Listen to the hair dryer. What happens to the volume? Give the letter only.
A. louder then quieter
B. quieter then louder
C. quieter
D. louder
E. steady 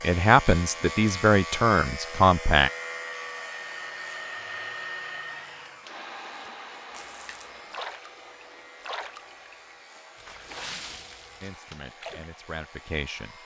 C.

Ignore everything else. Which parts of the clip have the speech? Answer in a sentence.
The speech can be heard from 0.0 to 2.7 s and from 11.4 to 13.3 s.